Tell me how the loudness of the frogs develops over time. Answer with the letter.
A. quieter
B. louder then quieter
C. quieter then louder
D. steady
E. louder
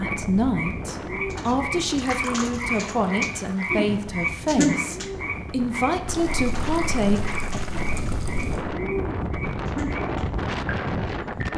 B.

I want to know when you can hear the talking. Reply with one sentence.
The talking can be heard from 0.0 to 7.6 s.